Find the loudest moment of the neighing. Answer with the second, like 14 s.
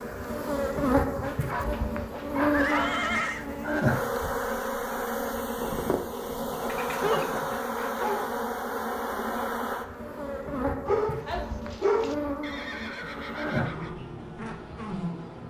3 s.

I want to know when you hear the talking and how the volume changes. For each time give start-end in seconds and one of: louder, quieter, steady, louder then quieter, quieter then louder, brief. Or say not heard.
not heard.